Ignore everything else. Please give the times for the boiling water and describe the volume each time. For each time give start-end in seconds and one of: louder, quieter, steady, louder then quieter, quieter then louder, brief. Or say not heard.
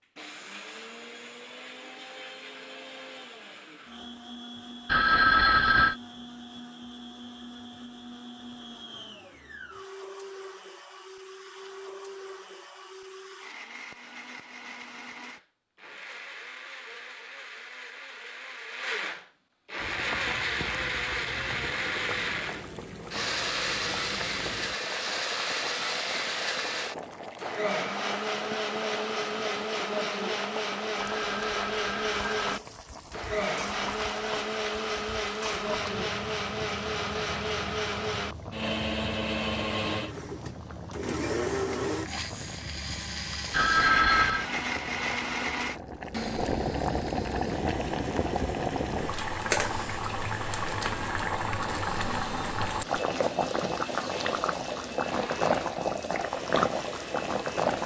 19.8-57.8 louder.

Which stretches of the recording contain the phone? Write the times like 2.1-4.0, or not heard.
4.8-6.0, 31.0-32.5, 43.5-44.5.